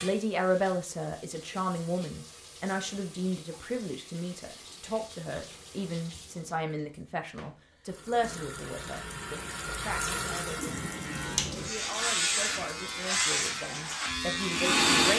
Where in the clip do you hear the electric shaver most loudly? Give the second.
15 s.